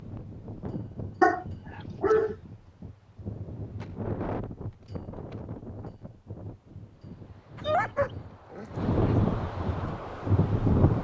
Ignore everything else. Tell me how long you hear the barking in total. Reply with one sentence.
You can hear the barking for 3 seconds altogether.